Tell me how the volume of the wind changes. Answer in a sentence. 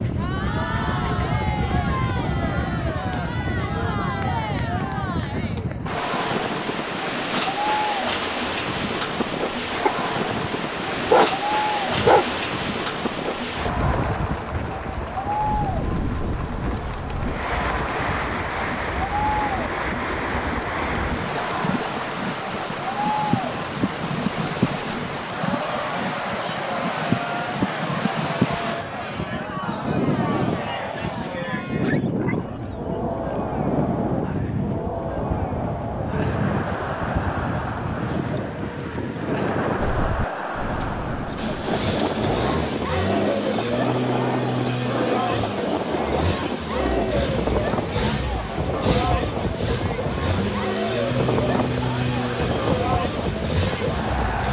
The loudness of the wind stays about the same.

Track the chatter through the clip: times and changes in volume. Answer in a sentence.
The chatter can be heard from 0.0 to 54.4 s, at a steady volume.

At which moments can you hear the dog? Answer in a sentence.
You can hear the dog from 9.8 to 12.2 s and from 31.6 to 32.8 s.